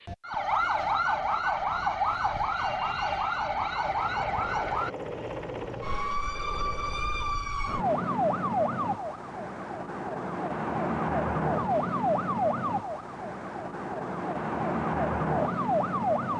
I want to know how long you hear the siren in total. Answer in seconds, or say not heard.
16 s.